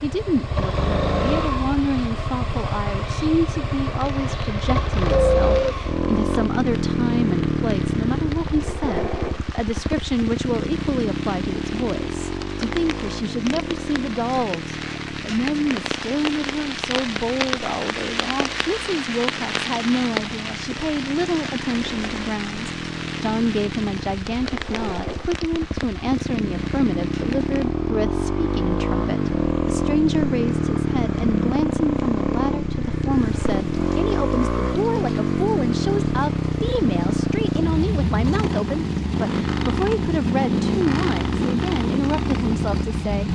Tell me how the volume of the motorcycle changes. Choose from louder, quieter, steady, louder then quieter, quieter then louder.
quieter then louder.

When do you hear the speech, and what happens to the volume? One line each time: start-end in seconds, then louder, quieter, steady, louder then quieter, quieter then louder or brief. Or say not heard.
0.0-43.2 steady.